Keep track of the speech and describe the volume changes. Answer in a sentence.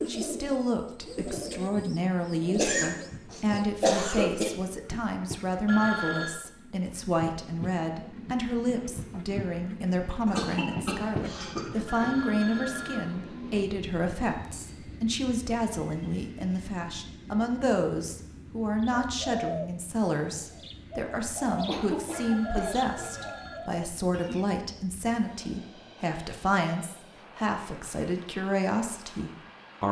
The loudness of the speech stays about the same.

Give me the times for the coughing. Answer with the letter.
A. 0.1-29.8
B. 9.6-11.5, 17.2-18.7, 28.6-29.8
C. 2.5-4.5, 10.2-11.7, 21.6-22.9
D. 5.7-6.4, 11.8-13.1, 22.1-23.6
C.